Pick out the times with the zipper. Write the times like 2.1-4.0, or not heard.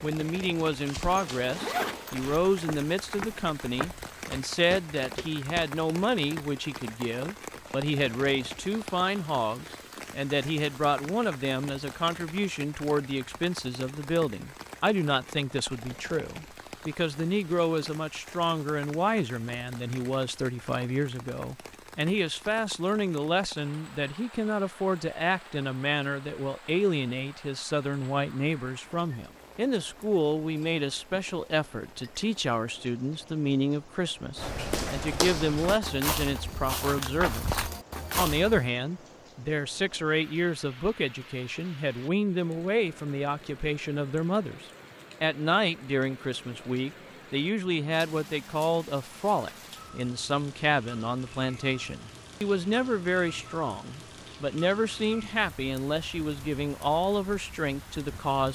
1.1-2.4.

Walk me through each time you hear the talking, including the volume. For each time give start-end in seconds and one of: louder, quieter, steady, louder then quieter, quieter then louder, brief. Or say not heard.
0.0-58.5 steady.